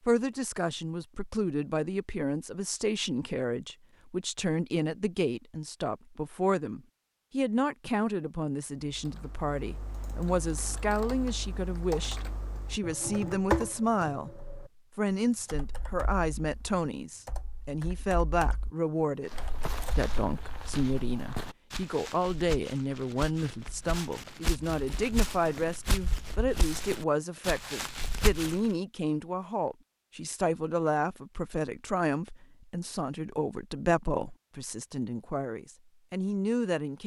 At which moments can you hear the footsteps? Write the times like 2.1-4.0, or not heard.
19.3-28.6.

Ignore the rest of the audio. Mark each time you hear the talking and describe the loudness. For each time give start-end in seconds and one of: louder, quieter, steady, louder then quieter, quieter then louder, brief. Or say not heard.
0.0-37.0 steady.